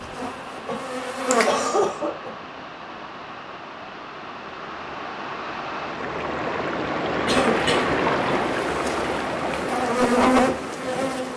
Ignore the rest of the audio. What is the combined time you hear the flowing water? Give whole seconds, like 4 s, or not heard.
11 s.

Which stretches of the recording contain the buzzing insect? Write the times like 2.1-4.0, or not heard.
0.0-1.9, 7.3-11.3.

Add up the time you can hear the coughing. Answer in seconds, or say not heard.
2 s.